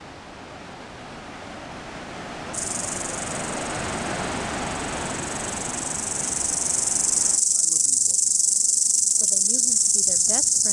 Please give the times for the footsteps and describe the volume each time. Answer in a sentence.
You can't hear the footsteps here.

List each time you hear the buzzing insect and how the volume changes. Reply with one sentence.
You can hear the buzzing insect from 2.5 to 10.6 s, getting louder.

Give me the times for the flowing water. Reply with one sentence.
The flowing water can be heard from 0.0 to 7.5 s.